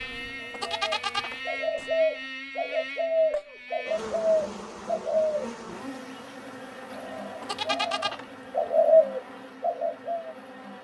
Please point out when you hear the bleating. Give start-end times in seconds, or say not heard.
0.0-1.9, 6.9-8.7.